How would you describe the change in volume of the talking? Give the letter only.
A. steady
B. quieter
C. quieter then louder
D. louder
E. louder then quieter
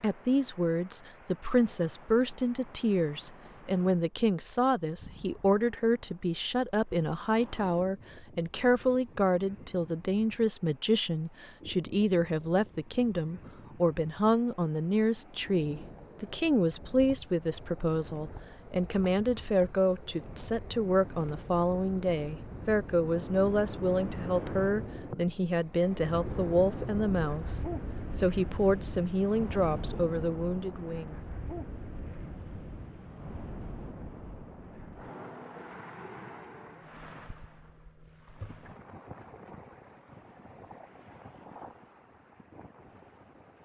A.